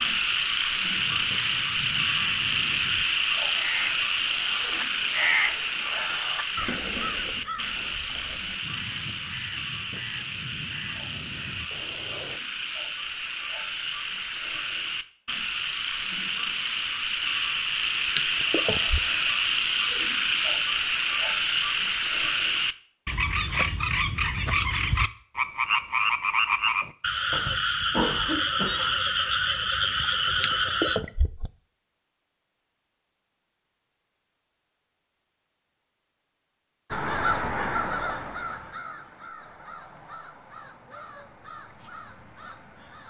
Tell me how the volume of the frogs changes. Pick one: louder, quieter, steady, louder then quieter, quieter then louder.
quieter then louder.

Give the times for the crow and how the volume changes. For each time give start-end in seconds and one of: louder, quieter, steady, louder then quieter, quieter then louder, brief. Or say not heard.
0.9-12.4 louder then quieter
36.9-43.0 quieter.